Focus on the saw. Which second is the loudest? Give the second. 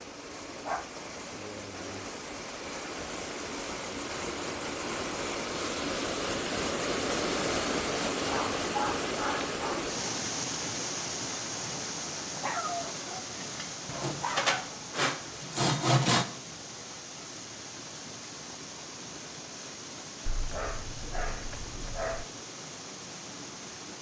16 s.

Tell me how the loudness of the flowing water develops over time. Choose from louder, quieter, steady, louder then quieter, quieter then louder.
louder then quieter.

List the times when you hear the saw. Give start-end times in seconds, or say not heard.
13.8-16.2.